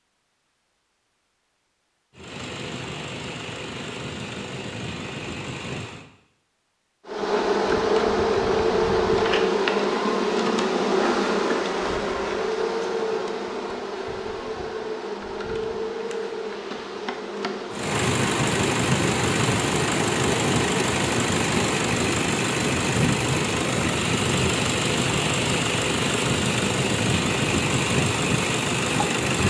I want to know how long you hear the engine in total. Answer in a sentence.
The engine can be heard for 16 seconds in total.